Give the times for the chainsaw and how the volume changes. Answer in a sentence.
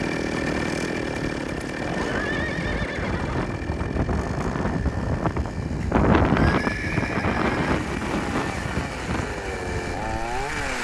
The chainsaw can be heard from 0.0 to 10.8 s, getting quieter then louder.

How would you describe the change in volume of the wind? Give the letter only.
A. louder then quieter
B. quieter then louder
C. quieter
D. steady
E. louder
A.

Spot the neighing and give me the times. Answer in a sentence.
The neighing can be heard from 1.9 to 3.5 s and from 5.8 to 7.8 s.